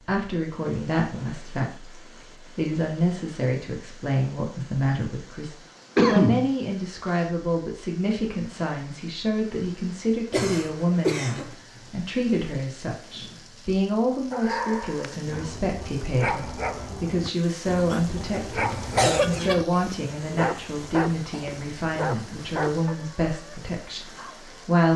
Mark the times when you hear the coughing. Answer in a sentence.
The coughing can be heard from 6.0 to 6.5 s, from 10.3 to 11.5 s and from 17.9 to 19.6 s.